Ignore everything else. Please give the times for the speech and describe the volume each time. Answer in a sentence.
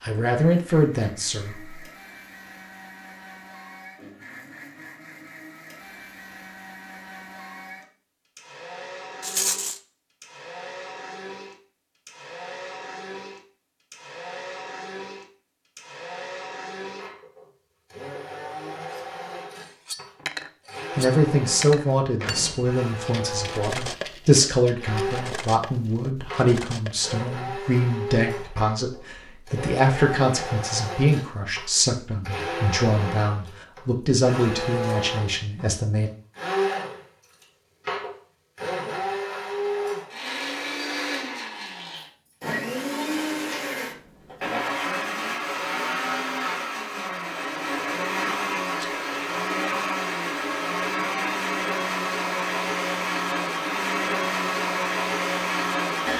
The speech can be heard briefly from 0.0 to 1.8 s; and from 20.9 to 36.1 s, at a steady volume.